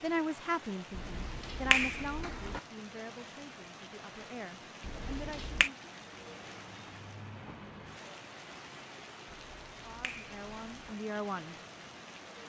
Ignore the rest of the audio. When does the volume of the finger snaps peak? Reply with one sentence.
The loudest moment of the finger snaps is at 2 seconds.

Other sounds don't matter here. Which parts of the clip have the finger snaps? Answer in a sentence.
You can hear the finger snaps from 0.9 to 2.6 s, from 4.8 to 5.7 s and from 9.3 to 10.9 s.